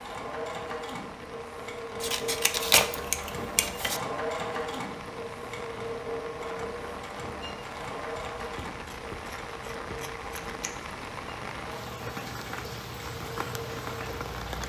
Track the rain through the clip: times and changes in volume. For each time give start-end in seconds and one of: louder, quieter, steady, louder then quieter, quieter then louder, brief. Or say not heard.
0.0-14.6 louder.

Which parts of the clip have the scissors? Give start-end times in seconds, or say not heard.
2.0-4.0, 8.3-10.8.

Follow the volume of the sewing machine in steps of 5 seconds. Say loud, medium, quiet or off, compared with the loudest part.
loud, loud, medium.